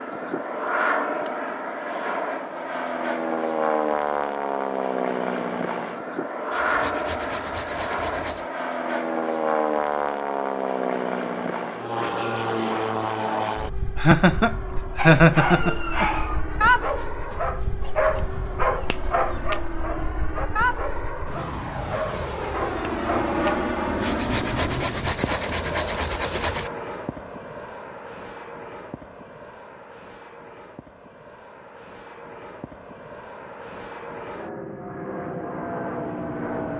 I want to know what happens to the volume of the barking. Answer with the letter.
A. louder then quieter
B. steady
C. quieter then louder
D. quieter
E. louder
D.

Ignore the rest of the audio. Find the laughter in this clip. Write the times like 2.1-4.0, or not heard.
13.9-16.1.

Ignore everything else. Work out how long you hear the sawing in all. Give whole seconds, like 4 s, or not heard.
5 s.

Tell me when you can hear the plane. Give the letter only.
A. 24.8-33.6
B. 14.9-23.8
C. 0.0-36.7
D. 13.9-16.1
C.